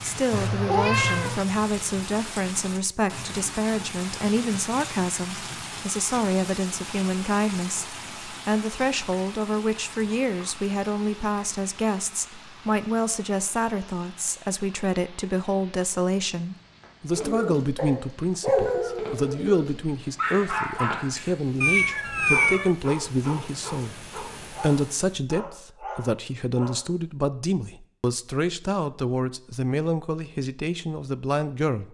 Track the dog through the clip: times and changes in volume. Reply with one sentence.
The dog can be heard from 17.1 to 26.9 s, getting quieter.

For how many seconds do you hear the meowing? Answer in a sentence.
The meowing can be heard for 2 seconds in total.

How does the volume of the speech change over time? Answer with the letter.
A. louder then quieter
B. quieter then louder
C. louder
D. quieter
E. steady
E.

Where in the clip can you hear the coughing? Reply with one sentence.
The coughing can't be heard in this clip.